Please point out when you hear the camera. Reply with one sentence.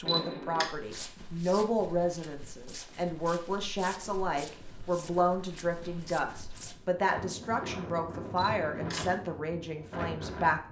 You can hear the camera from 0.1 to 0.7 s and from 8.3 to 9.2 s.